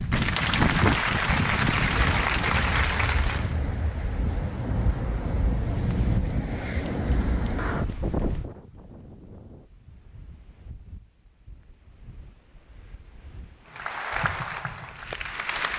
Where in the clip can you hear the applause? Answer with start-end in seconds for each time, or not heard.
0.0-3.5, 13.7-15.7.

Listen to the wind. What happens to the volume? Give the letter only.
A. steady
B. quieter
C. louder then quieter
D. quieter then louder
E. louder
B.